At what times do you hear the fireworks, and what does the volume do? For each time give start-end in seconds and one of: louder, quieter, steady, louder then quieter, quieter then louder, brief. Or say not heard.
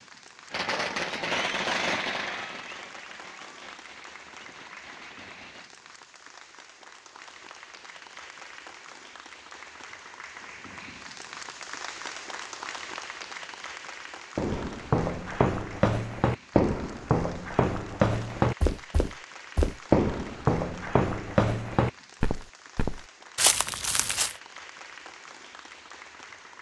0.5-5.7 quieter.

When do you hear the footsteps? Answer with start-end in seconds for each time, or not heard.
14.3-24.4.